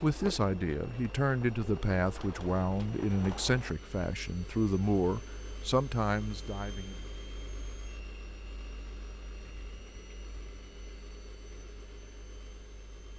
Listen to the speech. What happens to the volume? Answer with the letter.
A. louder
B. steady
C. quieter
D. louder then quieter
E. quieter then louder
B.